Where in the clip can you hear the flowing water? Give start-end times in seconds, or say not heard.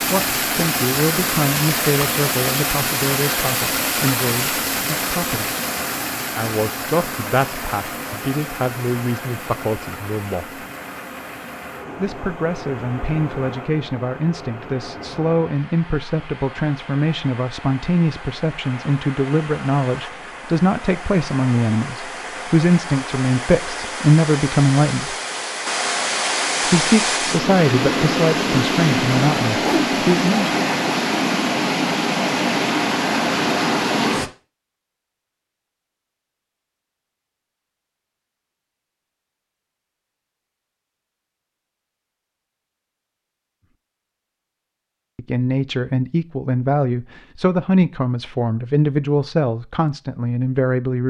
0.0-34.3.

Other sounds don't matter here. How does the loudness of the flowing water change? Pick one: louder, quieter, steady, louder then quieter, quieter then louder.
quieter then louder.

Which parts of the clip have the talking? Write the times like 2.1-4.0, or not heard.
0.0-5.5, 6.3-10.6, 11.9-25.1, 26.6-30.5, 45.1-51.0.